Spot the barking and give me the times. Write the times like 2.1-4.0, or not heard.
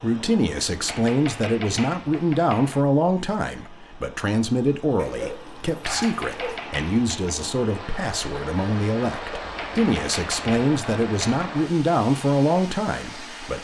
5.0-6.6.